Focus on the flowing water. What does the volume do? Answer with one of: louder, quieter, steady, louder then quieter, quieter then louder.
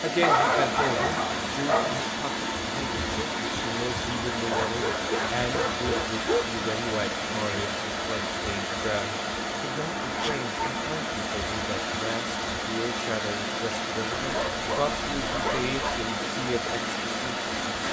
steady.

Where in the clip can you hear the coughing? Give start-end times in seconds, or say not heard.
not heard.